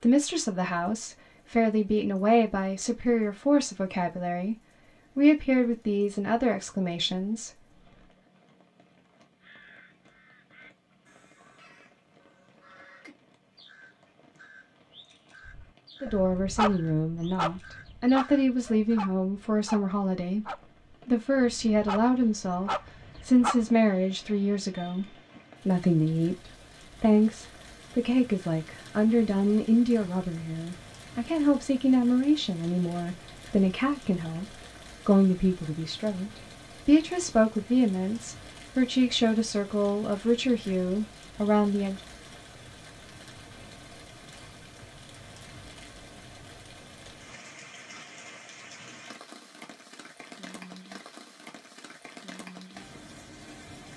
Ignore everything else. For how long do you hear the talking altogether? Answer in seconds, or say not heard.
34 s.